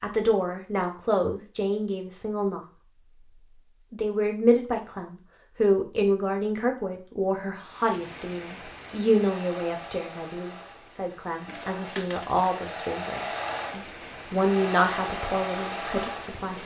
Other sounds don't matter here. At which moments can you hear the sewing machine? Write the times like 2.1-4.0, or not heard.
9.0-16.4.